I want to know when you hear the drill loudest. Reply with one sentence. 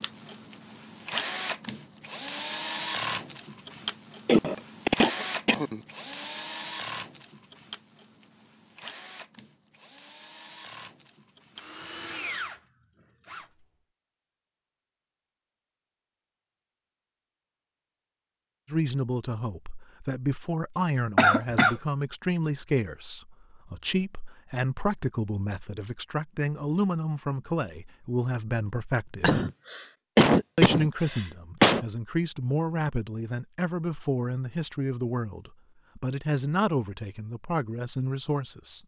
The loudest moment of the drill is at 3 seconds.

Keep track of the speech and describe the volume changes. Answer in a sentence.
The volume of the speech stays about the same.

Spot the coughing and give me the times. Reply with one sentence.
You can hear the coughing from 4.2 to 5.8 s, from 20.8 to 21.8 s and from 29.2 to 31.9 s.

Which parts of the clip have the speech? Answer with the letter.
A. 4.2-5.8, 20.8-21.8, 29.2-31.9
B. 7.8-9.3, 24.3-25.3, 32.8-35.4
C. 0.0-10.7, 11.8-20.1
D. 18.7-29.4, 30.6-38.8
D.